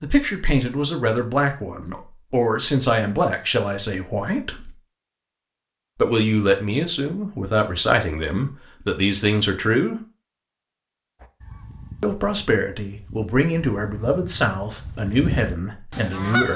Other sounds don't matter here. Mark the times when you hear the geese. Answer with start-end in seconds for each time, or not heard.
11.2-16.5.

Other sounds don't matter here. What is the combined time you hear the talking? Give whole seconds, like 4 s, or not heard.
13 s.